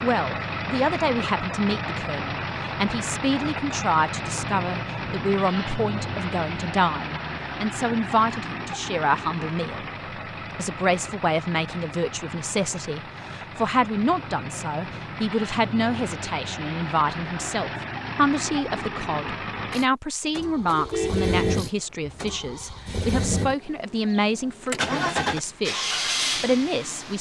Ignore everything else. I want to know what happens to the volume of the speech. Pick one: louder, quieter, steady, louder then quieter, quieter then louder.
steady.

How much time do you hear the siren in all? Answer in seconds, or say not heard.
not heard.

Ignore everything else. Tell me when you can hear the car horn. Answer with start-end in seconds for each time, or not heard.
20.6-22.3.